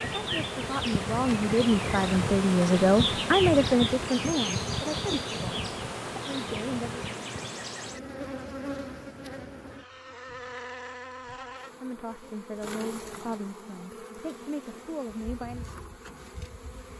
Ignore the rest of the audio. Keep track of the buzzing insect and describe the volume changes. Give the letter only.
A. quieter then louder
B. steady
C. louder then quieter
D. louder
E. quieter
E.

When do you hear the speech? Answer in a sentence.
The speech can be heard from 0.0 to 7.0 s and from 11.8 to 15.7 s.